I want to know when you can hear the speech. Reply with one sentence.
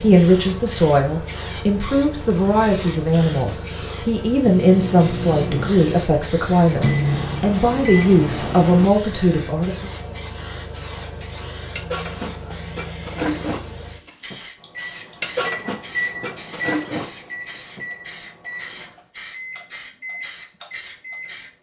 You can hear the speech from 0.0 to 9.9 s.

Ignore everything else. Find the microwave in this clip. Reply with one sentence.
The microwave can be heard from 4.4 to 8.9 s and from 14.6 to 21.4 s.